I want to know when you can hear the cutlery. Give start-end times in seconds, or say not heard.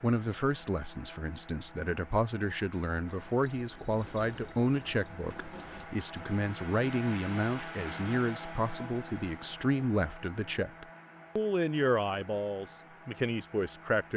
not heard.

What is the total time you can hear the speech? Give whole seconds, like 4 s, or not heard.
14 s.